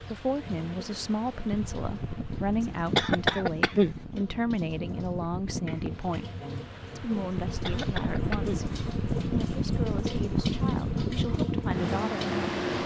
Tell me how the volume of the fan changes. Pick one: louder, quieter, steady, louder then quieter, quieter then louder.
louder.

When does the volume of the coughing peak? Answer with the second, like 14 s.
3 s.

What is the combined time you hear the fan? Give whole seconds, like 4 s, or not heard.
13 s.